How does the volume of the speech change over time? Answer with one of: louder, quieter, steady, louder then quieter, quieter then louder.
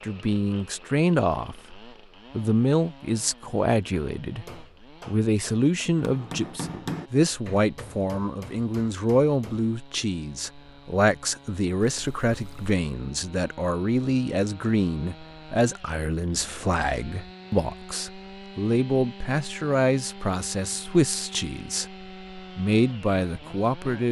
steady.